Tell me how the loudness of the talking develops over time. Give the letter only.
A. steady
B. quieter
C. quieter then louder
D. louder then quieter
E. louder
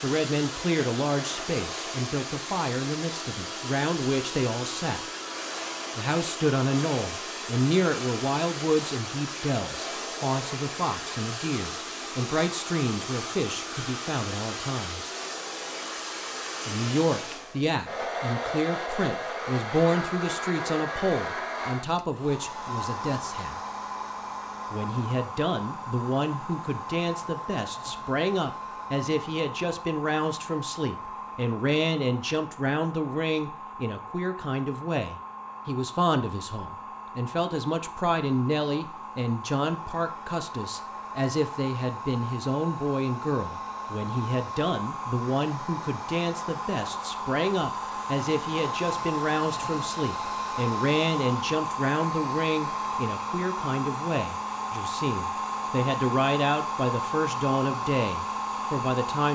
A.